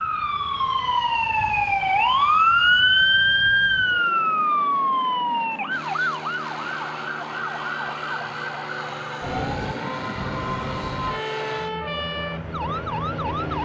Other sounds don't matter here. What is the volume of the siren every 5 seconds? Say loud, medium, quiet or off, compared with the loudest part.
loud, medium, medium.